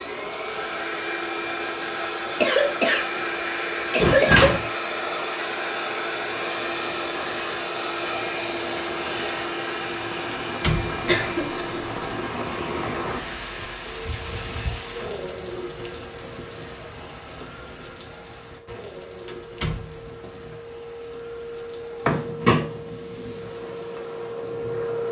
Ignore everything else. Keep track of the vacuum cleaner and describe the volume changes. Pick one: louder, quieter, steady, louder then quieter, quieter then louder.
quieter then louder.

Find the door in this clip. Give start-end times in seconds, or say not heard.
4.2-4.7, 10.3-11.4, 19.2-20.6.